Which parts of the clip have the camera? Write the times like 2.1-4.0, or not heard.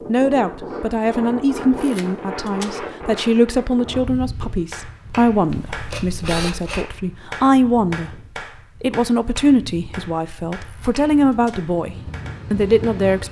1.8-2.7, 5.5-6.8, 10.6-11.6.